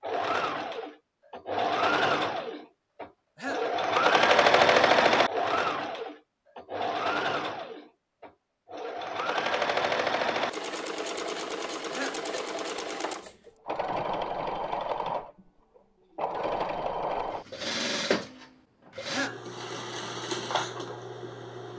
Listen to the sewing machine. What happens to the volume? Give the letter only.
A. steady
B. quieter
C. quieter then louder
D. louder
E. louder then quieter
B.